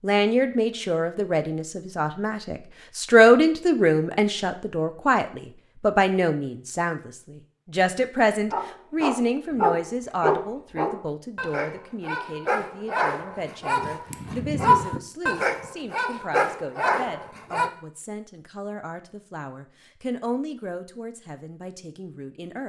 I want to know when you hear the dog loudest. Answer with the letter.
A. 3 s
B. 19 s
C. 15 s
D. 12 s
C.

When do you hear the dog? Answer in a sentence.
You can hear the dog from 8.5 to 17.7 s.